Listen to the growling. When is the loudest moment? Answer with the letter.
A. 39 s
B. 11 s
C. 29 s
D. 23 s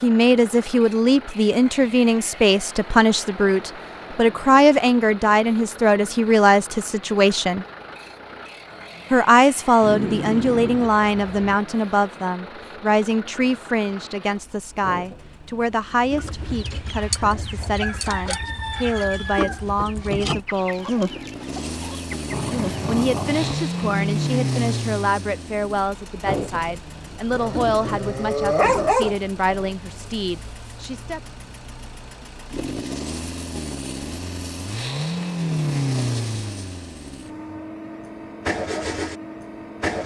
C.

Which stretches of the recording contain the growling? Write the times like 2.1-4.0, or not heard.
9.8-11.6, 22.3-24.1, 27.3-29.7.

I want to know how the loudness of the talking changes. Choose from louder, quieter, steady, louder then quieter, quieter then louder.
quieter.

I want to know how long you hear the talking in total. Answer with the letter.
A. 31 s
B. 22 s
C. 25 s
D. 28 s
D.